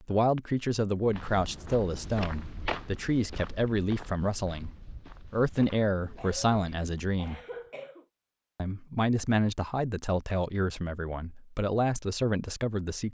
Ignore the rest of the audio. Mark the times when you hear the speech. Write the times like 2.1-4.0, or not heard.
0.0-7.4, 8.6-13.0.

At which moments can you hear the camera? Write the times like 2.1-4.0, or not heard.
not heard.